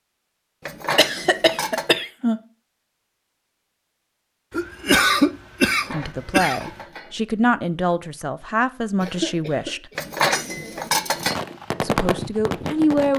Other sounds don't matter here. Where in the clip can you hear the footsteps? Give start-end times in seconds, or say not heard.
not heard.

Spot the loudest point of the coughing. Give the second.
5 s.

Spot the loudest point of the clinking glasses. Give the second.
10 s.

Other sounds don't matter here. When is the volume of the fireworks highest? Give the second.
12 s.